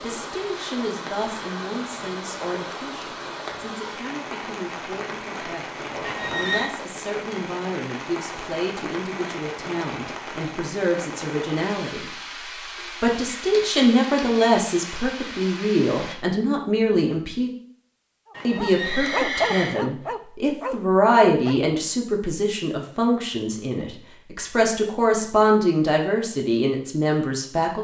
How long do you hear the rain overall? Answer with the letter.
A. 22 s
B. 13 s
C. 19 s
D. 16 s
D.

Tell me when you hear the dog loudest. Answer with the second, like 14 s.
19 s.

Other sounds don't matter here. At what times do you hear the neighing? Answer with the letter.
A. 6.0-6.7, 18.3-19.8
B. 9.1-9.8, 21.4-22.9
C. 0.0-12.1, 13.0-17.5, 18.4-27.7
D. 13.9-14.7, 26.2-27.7
A.